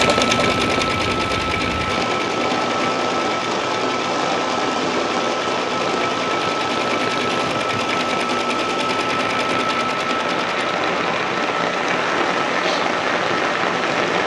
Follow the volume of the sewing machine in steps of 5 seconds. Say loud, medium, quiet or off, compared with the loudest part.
loud, loud, medium.